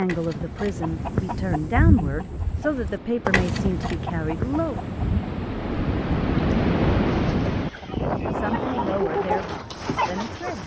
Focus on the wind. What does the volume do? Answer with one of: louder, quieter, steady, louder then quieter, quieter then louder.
louder then quieter.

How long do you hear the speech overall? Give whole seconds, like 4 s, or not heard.
7 s.